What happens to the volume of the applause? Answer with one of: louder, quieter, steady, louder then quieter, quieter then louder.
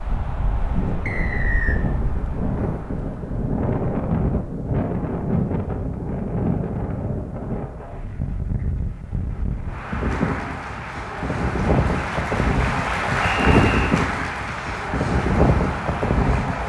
louder then quieter.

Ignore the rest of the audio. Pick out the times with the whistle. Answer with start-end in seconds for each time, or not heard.
1.1-1.8, 13.2-14.0.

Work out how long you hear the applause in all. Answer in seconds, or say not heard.
7 s.